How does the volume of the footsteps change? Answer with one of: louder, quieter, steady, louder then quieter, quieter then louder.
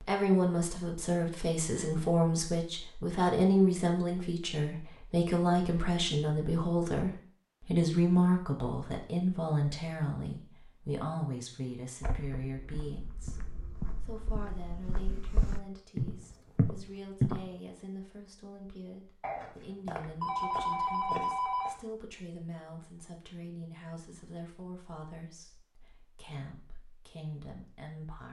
louder.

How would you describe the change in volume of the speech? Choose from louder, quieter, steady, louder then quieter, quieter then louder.
quieter.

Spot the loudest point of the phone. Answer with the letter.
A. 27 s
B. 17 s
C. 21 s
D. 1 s
C.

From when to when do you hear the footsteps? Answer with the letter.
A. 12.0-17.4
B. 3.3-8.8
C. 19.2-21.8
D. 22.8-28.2
A.